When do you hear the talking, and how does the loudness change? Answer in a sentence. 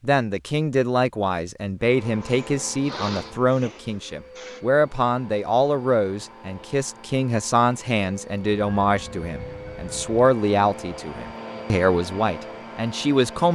The talking can be heard from 0.0 to 13.5 s, at a steady volume.